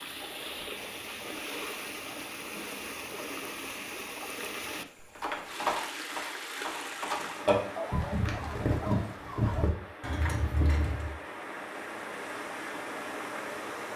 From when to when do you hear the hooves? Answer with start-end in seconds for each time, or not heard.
5.2-11.2.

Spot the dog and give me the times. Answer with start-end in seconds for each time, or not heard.
7.8-9.8.